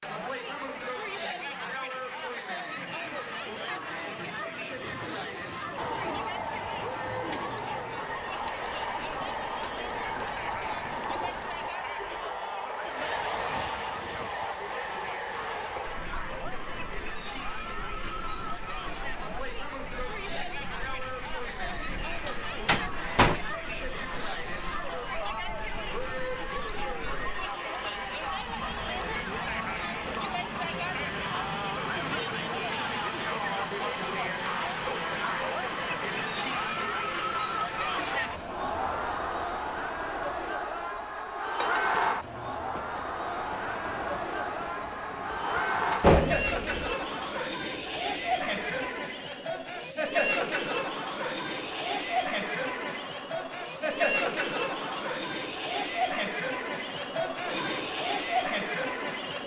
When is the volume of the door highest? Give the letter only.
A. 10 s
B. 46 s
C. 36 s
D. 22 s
B.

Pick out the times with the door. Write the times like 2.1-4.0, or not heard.
20.9-23.4, 45.9-47.0.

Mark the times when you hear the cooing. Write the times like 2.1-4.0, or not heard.
2.8-12.4.